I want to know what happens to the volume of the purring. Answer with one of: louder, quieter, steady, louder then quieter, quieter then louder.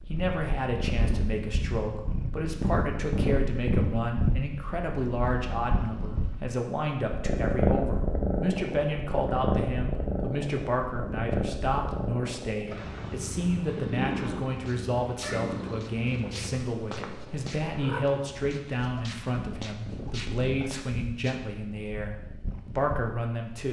quieter.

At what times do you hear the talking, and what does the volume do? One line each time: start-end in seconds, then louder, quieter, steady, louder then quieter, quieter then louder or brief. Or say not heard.
0.1-23.6 steady.